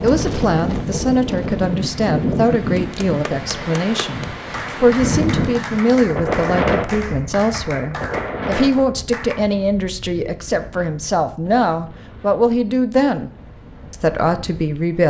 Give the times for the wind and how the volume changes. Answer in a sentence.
You can hear the wind from 0.0 to 15.0 s, getting quieter.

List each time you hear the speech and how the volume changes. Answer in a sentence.
You can hear the speech from 0.0 to 13.3 s, at a steady volume; and briefly from 13.9 to 15.0 s.